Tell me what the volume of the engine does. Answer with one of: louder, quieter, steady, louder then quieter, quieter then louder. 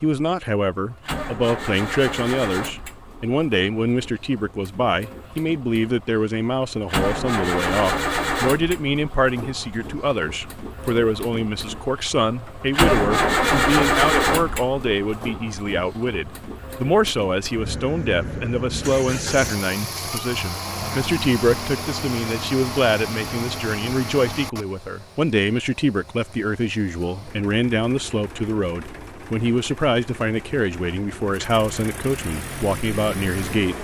louder then quieter.